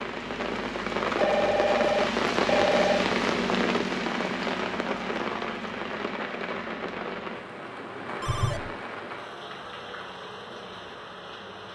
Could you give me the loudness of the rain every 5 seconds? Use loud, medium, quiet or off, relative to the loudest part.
loud, medium, quiet.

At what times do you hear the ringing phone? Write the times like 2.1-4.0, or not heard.
1.1-3.0, 8.2-8.8.